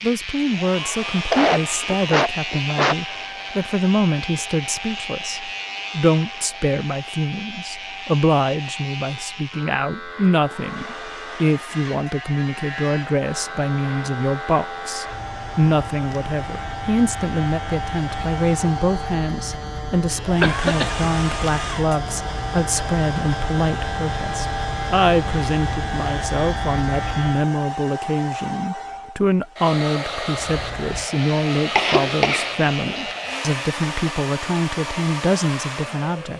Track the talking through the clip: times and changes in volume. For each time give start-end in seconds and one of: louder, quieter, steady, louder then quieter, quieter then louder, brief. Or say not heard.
0.0-36.3 steady.